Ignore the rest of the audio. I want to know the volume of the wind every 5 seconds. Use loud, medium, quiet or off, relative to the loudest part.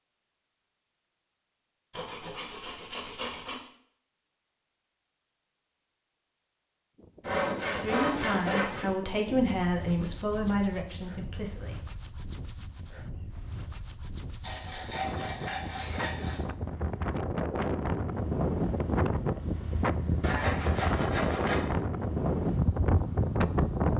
off, quiet, quiet, loud, loud.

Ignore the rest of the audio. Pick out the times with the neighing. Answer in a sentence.
The neighing can't be heard in this clip.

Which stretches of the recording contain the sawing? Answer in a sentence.
The sawing can be heard from 1.9 to 3.6 s, from 7.2 to 8.9 s, from 14.4 to 16.4 s and from 20.2 to 21.6 s.